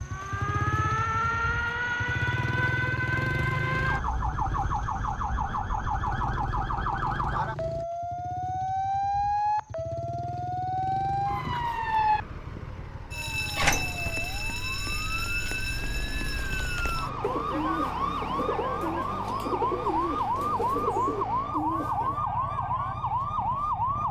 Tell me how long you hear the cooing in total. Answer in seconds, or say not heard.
5 s.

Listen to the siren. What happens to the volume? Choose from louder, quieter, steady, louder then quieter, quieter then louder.
steady.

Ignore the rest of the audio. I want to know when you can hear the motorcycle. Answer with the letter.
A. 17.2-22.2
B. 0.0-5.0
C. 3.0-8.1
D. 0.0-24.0
D.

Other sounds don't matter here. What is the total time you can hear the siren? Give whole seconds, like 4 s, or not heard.
24 s.